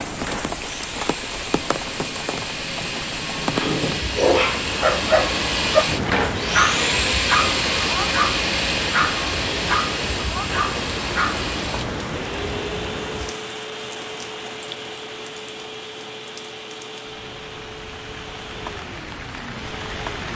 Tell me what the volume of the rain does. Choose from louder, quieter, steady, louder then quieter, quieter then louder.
quieter.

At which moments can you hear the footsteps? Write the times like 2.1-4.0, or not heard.
not heard.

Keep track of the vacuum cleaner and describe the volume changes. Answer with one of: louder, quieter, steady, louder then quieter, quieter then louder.
louder then quieter.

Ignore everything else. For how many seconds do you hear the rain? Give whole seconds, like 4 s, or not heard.
20 s.